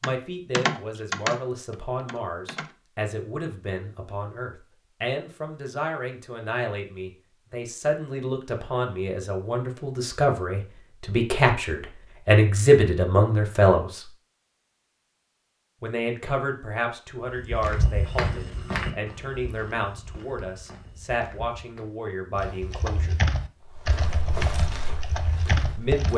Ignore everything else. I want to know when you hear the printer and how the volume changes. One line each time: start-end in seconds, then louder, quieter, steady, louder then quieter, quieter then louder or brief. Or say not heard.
not heard.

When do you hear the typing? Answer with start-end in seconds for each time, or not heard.
0.0-2.8, 22.4-26.1.